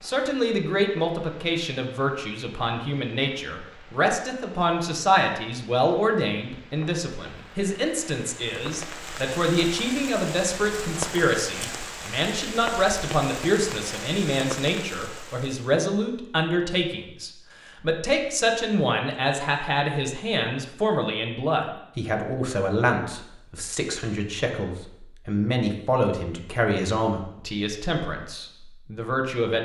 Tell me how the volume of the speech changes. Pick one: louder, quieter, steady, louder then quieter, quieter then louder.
steady.